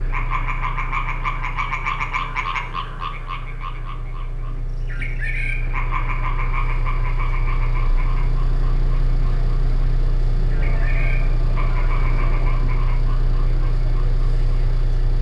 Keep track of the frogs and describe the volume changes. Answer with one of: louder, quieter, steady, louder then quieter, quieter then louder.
quieter.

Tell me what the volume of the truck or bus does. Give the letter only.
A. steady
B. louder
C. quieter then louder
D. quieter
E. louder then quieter
B.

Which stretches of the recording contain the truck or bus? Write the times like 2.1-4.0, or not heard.
0.0-15.1.